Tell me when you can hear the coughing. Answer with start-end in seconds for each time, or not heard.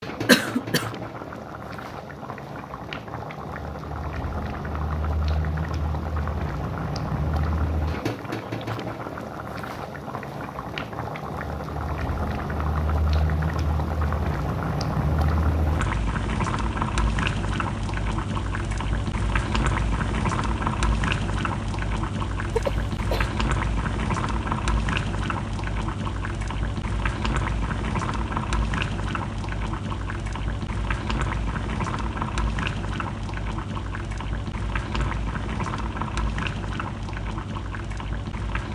0.2-0.9, 22.5-23.3.